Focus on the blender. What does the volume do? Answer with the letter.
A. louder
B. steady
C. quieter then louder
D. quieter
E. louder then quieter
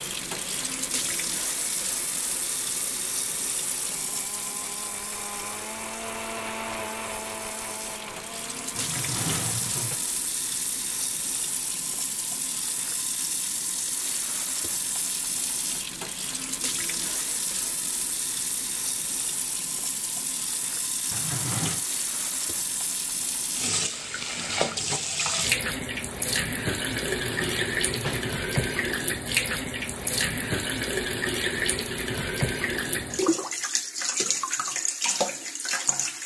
E.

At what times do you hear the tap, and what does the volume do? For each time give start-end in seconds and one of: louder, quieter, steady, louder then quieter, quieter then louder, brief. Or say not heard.
0.0-36.2 louder.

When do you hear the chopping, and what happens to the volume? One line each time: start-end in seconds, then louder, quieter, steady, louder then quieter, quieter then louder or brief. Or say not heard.
not heard.